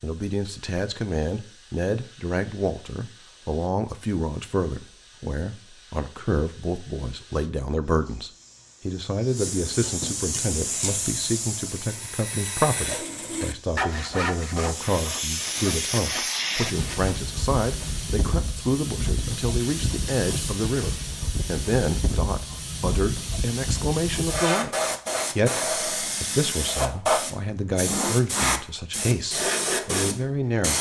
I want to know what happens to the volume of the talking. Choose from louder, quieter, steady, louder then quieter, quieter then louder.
steady.